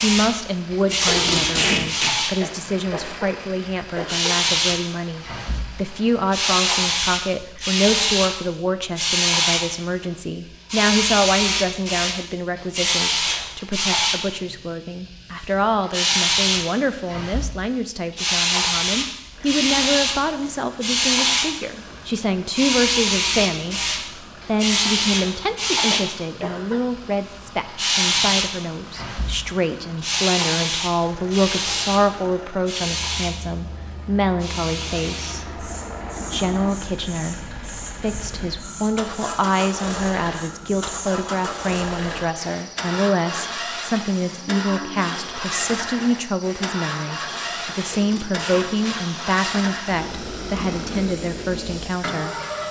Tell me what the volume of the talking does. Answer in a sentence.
The volume of the talking stays about the same.